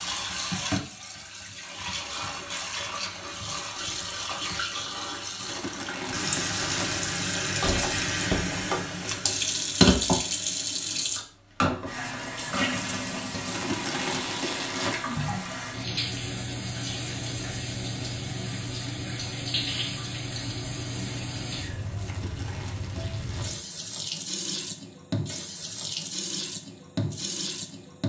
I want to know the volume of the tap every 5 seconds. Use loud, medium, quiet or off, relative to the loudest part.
medium, loud, loud, medium, medium, medium.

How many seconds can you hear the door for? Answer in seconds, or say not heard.
2 s.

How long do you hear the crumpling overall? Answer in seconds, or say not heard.
5 s.